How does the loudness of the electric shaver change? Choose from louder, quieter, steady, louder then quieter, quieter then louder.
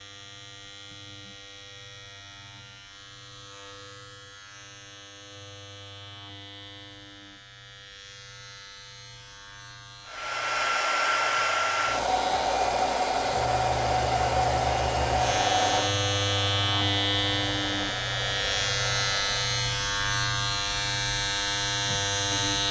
louder.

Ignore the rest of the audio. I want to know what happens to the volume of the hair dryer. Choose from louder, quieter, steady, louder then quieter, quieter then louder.
quieter.